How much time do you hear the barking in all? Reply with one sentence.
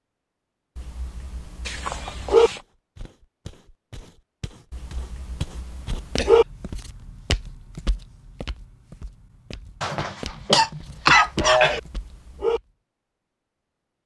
You can hear the barking for 5 seconds altogether.